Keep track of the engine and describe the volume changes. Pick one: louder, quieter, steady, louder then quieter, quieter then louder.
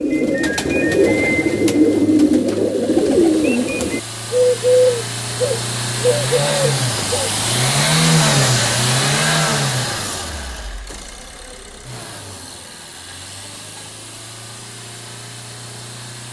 louder then quieter.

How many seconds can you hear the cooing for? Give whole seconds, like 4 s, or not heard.
7 s.